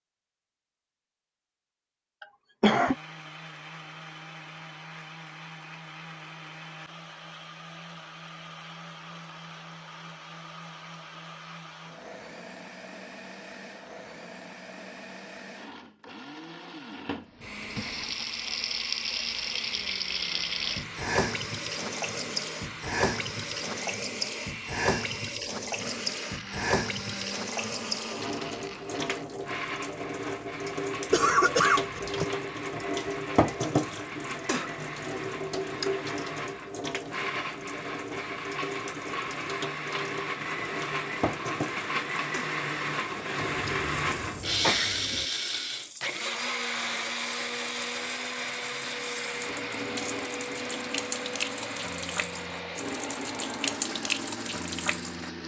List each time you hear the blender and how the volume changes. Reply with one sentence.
The blender can be heard from 2.8 to 55.4 s, getting louder.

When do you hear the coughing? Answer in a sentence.
You can hear the coughing from 2.2 to 3.0 s, from 31.1 to 32.2 s and from 43.4 to 45.2 s.